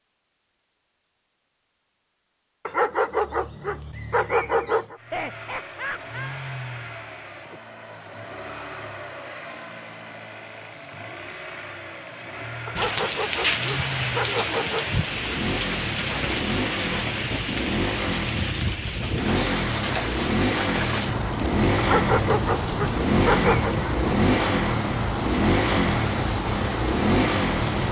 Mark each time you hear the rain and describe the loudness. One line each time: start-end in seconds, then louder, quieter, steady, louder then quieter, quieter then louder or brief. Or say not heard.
12.8-27.8 steady.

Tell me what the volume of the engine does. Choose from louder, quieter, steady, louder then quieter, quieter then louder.
louder.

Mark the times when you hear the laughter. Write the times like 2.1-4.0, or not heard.
5.0-6.3.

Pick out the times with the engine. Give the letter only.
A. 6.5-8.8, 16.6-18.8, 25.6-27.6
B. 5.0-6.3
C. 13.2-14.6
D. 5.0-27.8
D.